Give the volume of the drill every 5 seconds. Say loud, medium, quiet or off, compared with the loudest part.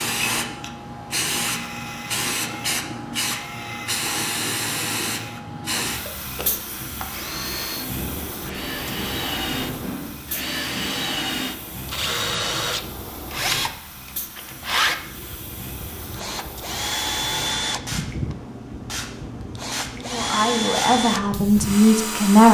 medium, medium, loud, loud, loud.